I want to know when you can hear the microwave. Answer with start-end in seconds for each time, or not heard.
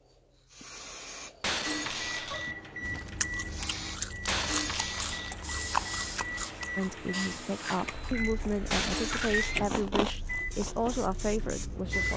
1.6-12.1.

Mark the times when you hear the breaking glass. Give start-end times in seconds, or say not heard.
1.4-2.5, 4.2-5.3, 8.7-9.6.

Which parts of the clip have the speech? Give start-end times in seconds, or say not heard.
6.8-12.1.